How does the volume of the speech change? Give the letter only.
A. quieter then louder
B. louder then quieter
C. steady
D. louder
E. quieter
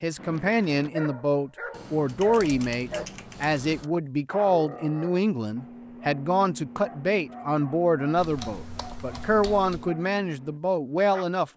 C.